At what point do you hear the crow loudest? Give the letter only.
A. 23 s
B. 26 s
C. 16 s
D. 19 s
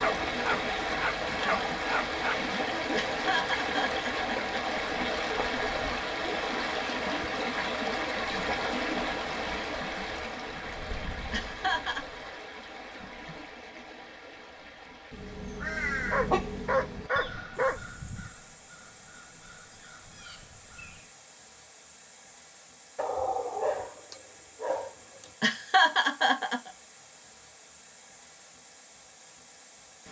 C.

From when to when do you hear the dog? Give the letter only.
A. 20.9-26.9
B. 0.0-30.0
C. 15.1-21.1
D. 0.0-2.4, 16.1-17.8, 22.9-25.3
D.